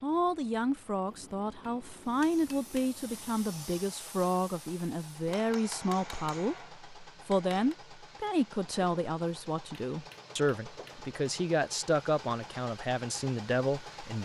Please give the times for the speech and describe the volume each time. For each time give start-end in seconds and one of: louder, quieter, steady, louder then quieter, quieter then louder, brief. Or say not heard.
0.0-14.2 steady.